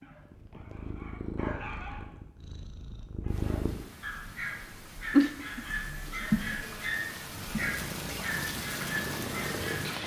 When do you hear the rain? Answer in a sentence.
You can hear the rain from 3.2 to 10.0 s.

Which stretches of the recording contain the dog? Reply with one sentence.
The dog can be heard from 0.0 to 2.0 s and from 3.2 to 9.9 s.